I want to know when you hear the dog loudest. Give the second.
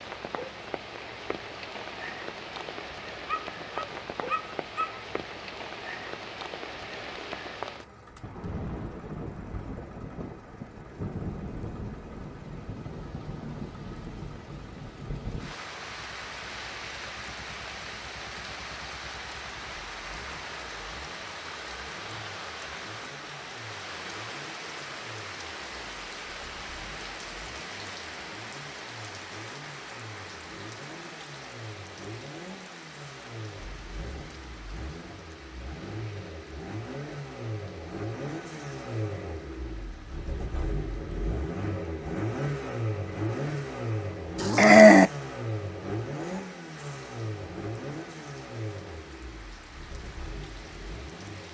45 s.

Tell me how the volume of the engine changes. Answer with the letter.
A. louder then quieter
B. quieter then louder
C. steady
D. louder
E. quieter
D.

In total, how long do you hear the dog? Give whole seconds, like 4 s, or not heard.
3 s.